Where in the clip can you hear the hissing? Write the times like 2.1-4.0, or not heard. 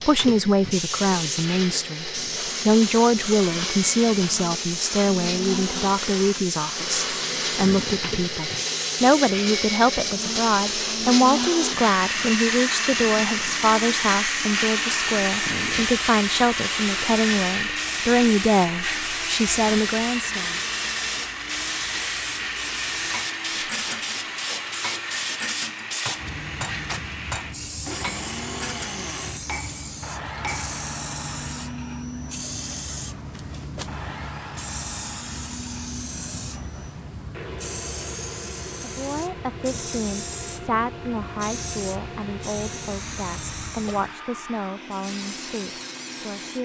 0.0-46.6.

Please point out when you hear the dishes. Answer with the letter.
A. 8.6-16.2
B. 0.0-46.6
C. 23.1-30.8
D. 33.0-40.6
C.